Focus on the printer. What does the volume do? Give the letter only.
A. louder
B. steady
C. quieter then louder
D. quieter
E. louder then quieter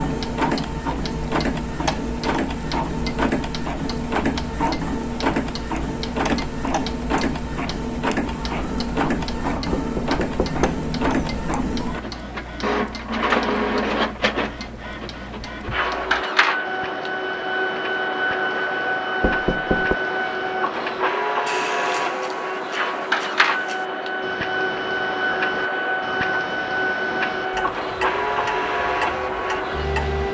B.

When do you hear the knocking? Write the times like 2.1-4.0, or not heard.
9.7-10.8, 19.2-19.9.